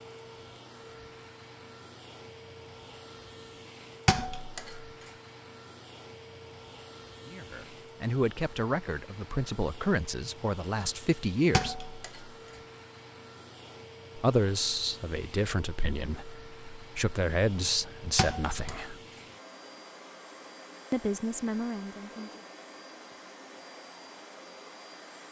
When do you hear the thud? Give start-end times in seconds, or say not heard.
4.0-4.8, 11.5-12.3, 18.1-18.9.